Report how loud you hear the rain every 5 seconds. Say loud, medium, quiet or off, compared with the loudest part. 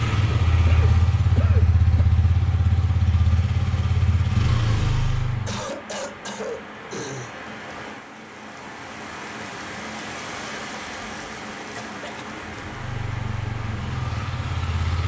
medium, loud, loud.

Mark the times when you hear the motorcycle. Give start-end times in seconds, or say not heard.
0.0-5.7, 12.4-15.0.